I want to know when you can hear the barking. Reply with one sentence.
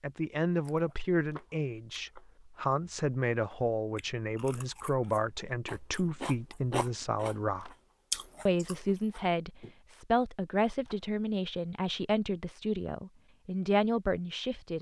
The barking can't be heard in this clip.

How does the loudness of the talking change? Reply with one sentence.
The loudness of the talking stays about the same.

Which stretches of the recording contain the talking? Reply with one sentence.
You can hear the talking from 0.0 to 7.7 s and from 8.4 to 14.7 s.